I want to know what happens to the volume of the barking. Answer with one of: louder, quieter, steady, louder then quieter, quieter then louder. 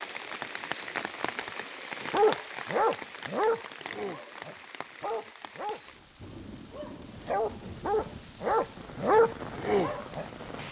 quieter then louder.